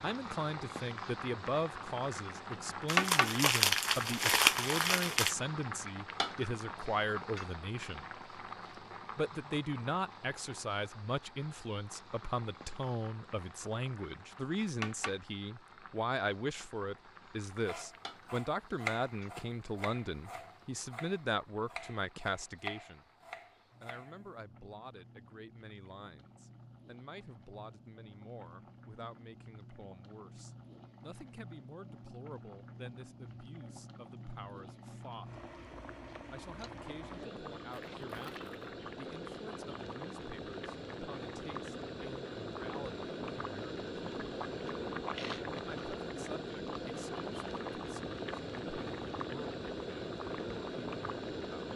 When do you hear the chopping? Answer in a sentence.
The chopping can be heard from 17.6 to 24.2 s.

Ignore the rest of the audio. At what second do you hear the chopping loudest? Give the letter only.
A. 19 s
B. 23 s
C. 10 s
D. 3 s
A.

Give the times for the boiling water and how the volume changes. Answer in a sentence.
The boiling water can be heard from 0.0 to 51.7 s, getting quieter then louder.